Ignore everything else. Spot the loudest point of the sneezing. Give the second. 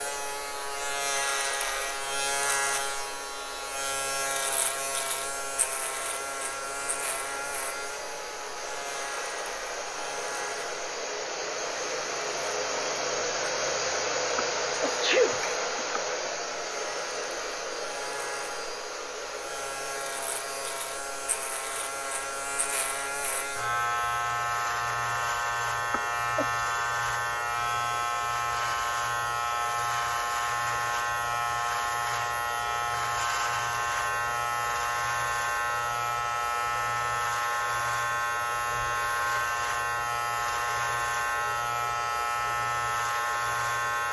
15 s.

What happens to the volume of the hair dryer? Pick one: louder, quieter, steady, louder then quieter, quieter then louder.
louder then quieter.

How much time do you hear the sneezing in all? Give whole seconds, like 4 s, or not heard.
2 s.